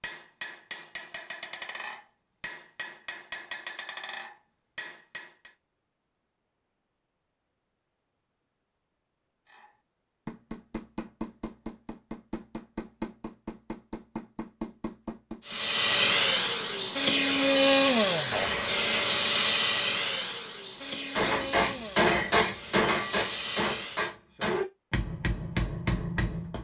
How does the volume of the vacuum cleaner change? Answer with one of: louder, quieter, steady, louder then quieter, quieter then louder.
quieter.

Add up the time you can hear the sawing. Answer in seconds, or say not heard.
not heard.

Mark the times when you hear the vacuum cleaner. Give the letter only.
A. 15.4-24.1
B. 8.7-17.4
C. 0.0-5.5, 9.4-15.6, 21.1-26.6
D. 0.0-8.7
A.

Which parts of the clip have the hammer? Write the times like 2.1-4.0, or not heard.
0.0-5.5, 9.4-15.6, 21.1-26.6.